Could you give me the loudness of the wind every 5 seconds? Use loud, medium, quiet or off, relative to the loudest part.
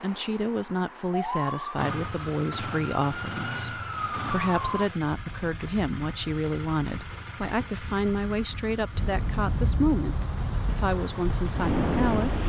off, medium, loud.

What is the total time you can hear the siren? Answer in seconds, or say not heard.
5 s.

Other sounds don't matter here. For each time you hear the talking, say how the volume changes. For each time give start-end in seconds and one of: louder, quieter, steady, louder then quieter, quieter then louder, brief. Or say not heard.
0.0-12.4 steady.